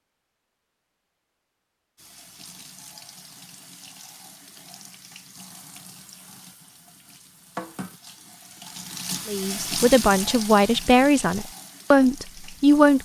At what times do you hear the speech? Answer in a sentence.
You can hear the speech from 9.2 to 12.9 s.